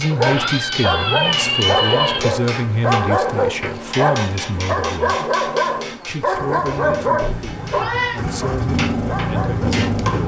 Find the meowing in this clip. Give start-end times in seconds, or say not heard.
0.2-2.2, 7.2-8.2.